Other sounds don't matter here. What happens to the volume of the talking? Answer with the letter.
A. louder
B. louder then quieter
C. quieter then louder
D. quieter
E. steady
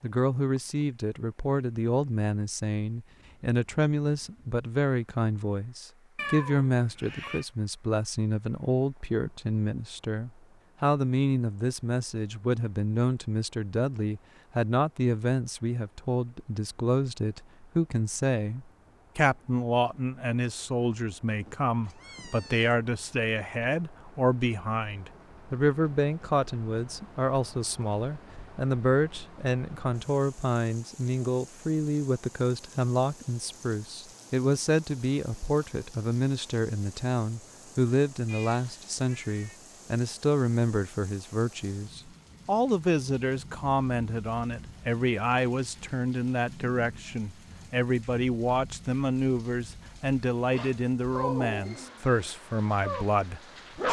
E.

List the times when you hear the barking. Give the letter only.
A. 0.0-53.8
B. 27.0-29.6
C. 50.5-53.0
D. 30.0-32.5
C.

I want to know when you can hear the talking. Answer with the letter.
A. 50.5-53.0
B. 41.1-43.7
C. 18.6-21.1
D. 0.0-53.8
D.